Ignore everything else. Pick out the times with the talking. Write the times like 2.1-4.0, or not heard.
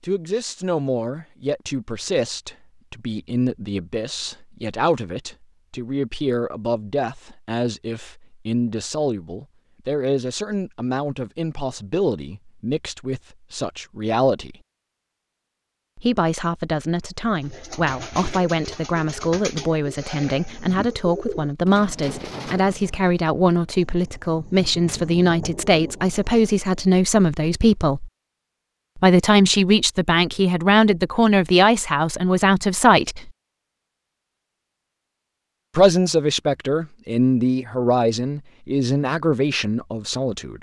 0.0-14.6, 15.9-28.1, 28.9-33.3, 35.8-40.5.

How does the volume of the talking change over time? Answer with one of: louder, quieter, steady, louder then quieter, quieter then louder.
louder.